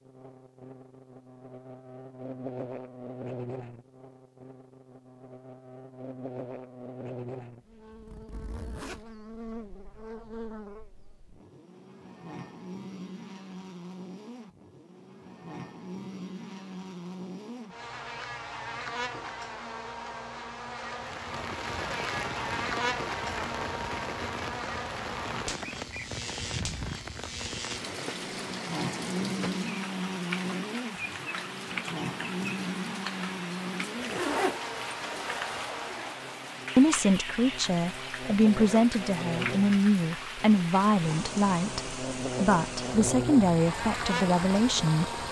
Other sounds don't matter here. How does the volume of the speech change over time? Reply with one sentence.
The loudness of the speech stays about the same.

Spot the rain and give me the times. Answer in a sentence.
The rain can be heard from 20.9 to 45.2 s.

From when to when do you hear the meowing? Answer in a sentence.
The meowing can't be heard in this clip.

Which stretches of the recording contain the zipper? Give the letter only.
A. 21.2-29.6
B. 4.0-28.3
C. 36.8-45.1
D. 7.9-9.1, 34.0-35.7
D.